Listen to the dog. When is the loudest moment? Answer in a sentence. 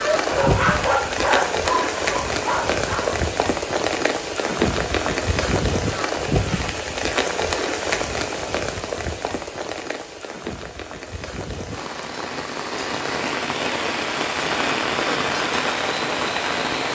The loudest moment of the dog is at 1 second.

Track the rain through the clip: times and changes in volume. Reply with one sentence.
The rain can be heard from 0.0 to 16.9 s, getting quieter then louder.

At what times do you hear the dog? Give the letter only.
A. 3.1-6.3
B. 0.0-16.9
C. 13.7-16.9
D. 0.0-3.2
D.